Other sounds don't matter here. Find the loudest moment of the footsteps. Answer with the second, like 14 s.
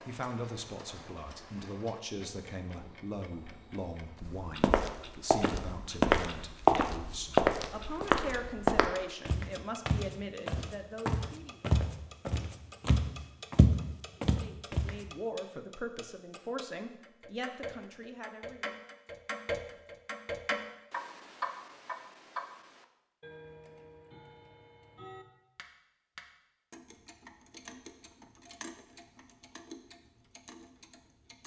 7 s.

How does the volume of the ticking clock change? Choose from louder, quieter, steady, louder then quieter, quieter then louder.
louder then quieter.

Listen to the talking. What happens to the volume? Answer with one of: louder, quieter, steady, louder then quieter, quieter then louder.
steady.